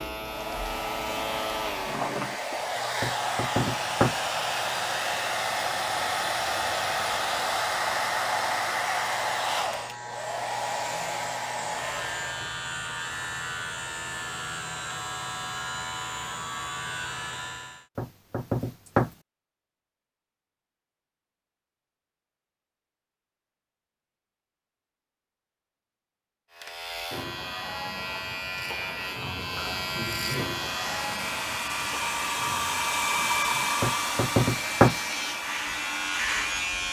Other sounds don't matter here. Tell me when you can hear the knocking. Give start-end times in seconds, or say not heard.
3.0-4.2, 17.9-19.1, 33.8-35.0.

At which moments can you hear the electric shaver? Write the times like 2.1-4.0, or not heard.
0.0-17.9, 26.5-36.8.